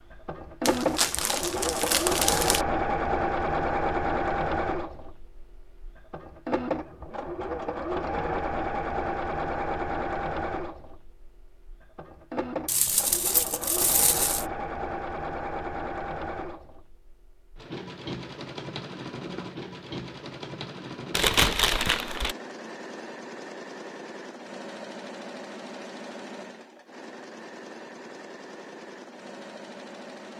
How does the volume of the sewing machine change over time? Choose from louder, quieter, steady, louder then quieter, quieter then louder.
quieter.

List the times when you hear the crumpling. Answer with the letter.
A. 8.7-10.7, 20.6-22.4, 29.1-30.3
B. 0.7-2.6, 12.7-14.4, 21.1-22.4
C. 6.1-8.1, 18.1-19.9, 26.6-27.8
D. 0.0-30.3
B.